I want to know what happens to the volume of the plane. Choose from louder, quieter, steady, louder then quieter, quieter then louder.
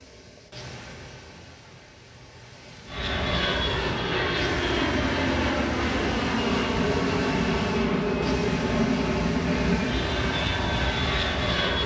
steady.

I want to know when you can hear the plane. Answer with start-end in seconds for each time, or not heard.
2.9-11.8.